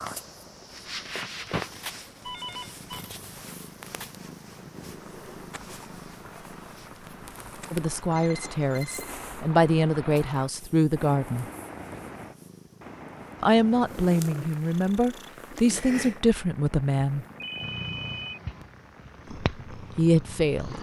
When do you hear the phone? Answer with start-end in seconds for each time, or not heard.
2.2-3.1, 8.1-9.2, 17.4-18.4.